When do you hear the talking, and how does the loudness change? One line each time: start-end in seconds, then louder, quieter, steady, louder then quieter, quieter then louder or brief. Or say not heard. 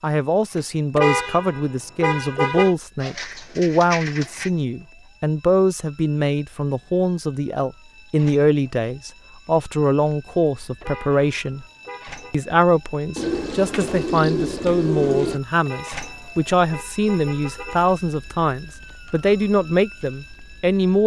0.0-11.7 steady
12.3-21.0 steady.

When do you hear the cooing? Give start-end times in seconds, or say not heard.
3.0-4.5, 13.2-15.4.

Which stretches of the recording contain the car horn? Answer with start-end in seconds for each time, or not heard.
0.9-2.8, 10.8-12.3, 15.7-17.9.